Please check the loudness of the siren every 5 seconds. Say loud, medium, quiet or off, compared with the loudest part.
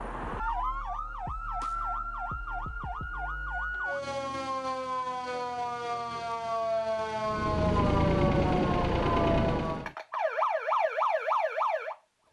medium, loud, loud.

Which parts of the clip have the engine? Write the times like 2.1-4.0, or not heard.
7.2-9.9.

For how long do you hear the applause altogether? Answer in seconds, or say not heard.
not heard.